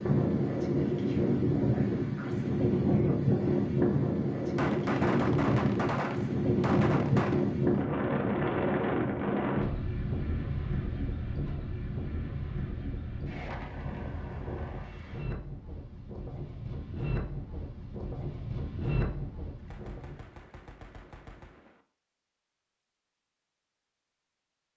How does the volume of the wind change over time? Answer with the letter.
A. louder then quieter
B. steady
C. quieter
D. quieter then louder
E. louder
C.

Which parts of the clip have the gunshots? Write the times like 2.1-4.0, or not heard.
4.3-7.5, 19.6-21.8.